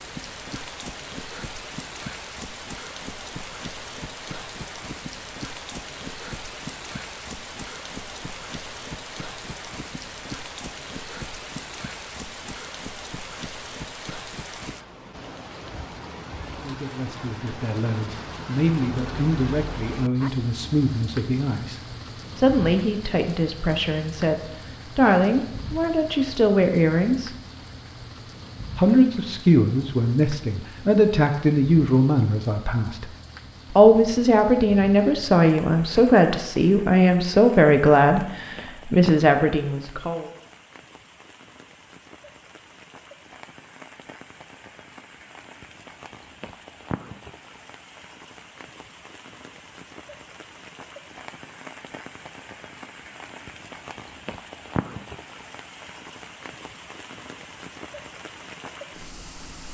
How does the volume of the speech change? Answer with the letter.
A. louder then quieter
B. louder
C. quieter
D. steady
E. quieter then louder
B.